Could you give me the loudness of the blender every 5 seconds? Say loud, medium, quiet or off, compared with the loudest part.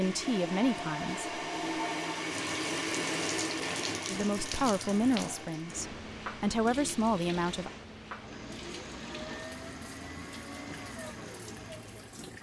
loud, medium, medium.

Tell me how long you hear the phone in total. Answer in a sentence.
The phone can be heard for 2 seconds in total.